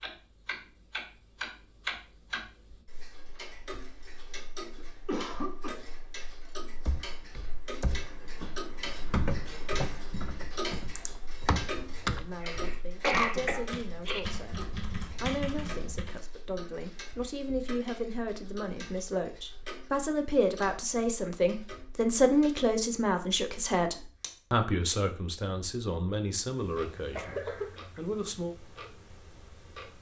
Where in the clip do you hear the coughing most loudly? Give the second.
13 s.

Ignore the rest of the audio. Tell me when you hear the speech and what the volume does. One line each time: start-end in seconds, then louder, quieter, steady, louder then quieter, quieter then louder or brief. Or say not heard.
12.0-28.6 louder then quieter.